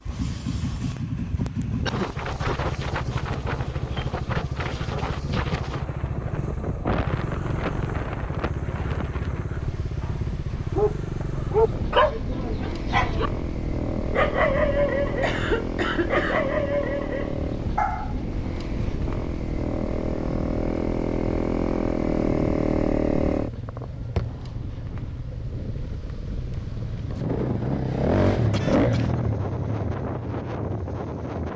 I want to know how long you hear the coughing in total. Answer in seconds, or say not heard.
3 s.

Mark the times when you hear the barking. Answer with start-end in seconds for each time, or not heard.
10.7-13.3, 14.1-15.4, 16.1-18.1.